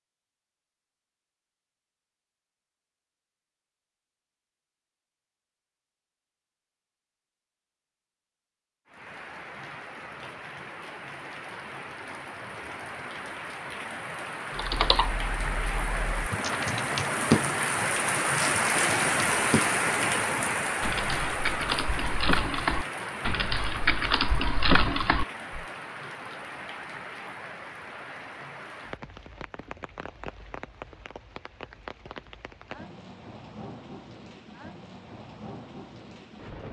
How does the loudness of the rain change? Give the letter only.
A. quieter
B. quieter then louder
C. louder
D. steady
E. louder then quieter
E.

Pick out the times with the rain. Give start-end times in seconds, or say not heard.
8.8-36.6.